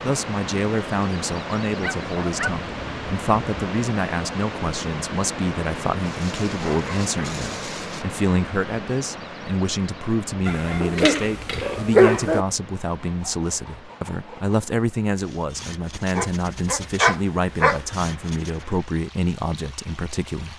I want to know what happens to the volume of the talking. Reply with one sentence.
The loudness of the talking stays about the same.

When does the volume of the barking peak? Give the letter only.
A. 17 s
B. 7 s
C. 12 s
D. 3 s
C.